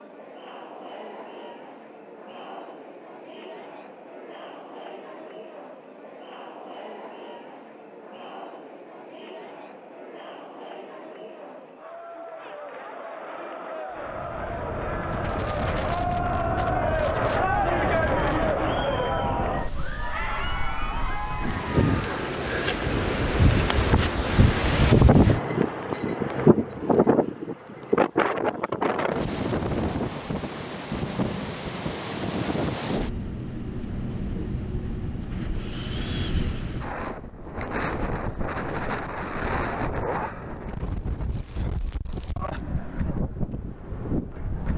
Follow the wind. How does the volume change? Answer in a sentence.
The loudness of the wind goes up, then down.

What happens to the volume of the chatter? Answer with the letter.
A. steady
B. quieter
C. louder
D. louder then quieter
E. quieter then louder
C.